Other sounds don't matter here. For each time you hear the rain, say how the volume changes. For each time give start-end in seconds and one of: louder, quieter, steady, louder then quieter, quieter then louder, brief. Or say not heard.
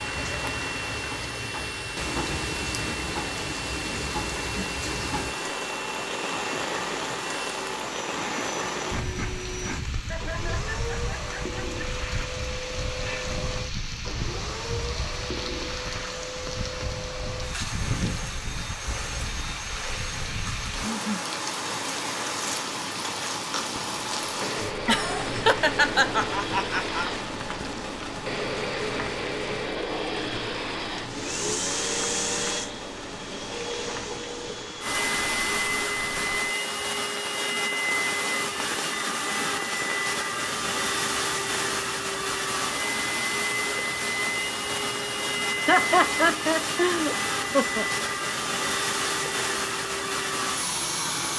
0.0-51.3 quieter.